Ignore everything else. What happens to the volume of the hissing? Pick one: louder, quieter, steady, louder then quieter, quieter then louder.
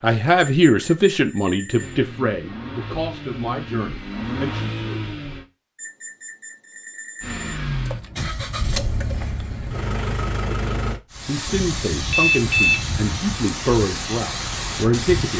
steady.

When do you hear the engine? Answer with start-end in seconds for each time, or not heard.
1.8-5.5, 7.2-11.0.